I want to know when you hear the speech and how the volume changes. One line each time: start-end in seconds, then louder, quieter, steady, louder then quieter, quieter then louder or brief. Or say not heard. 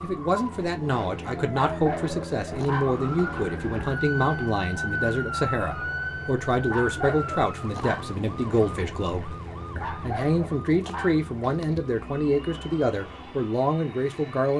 0.0-14.5 steady.